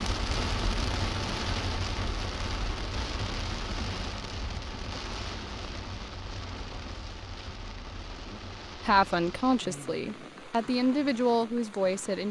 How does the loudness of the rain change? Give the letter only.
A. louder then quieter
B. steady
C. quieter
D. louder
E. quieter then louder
C.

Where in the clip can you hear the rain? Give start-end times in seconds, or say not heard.
0.0-12.2.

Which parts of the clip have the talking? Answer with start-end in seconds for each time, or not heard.
8.3-12.2.